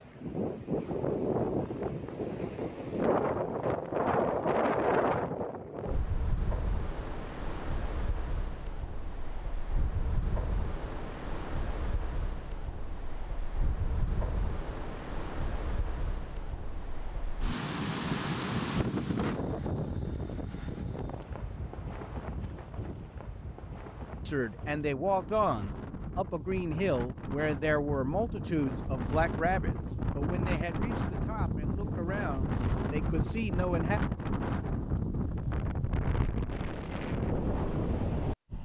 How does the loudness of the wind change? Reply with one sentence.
The loudness of the wind goes down, then up.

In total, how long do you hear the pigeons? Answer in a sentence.
You can't hear the pigeons here.